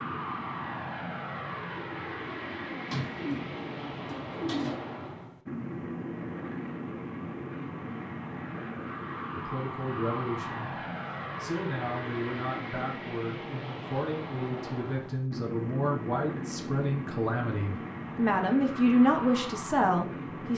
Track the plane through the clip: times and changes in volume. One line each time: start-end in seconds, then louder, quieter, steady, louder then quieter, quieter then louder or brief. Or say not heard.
0.0-20.5 steady.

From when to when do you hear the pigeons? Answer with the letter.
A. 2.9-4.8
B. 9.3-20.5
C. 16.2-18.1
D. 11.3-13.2
A.